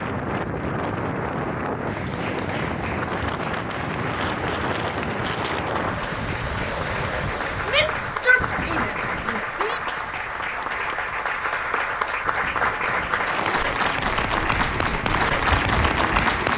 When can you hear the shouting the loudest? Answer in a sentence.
The volume of the shouting peaks at 8 seconds.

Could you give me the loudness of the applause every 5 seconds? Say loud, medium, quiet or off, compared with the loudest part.
quiet, medium, loud, loud.